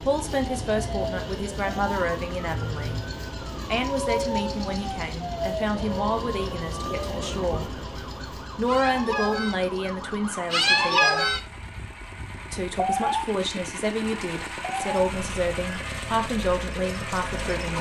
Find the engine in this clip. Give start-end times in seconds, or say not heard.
0.0-17.7.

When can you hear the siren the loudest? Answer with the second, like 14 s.
11 s.